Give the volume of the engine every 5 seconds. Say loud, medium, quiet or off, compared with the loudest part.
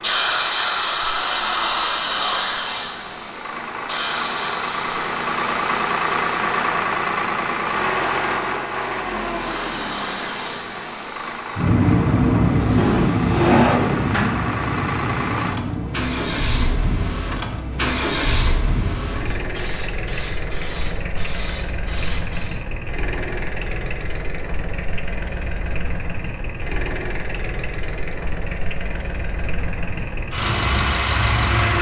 medium, loud, medium, medium, medium, medium, loud.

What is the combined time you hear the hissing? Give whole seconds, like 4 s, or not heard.
20 s.